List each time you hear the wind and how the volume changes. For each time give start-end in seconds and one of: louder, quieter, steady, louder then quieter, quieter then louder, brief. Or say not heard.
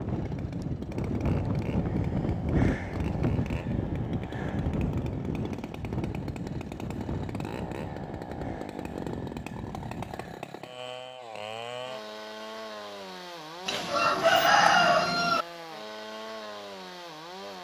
0.0-10.4 quieter.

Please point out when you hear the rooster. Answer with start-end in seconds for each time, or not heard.
13.7-15.4.